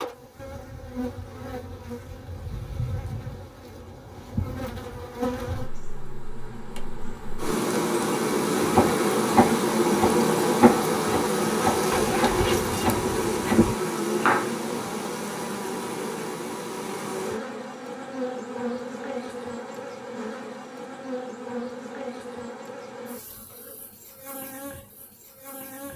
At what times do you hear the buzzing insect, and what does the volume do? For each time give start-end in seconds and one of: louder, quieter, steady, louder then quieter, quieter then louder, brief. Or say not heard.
0.0-25.9 louder then quieter.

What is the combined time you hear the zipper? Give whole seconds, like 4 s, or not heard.
2 s.